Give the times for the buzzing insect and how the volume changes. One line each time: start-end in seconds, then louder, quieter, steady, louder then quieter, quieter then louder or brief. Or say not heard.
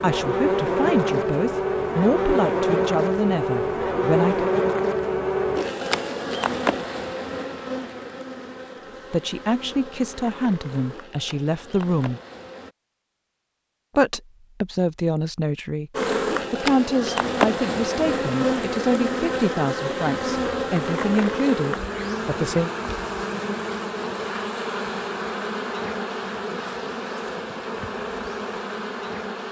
0.0-12.8 quieter
15.9-29.4 quieter.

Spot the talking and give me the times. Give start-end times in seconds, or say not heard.
0.0-4.5, 9.1-12.2, 13.9-15.9, 16.5-22.7.